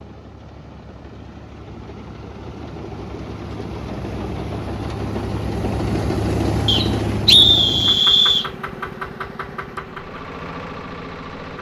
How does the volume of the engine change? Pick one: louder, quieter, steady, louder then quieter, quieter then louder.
louder then quieter.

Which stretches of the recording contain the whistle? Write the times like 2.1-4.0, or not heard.
6.7-8.5.